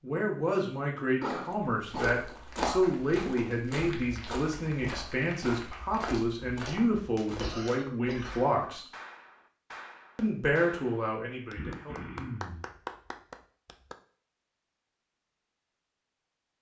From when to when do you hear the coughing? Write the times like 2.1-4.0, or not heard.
1.2-2.9, 7.4-8.4, 11.6-12.7.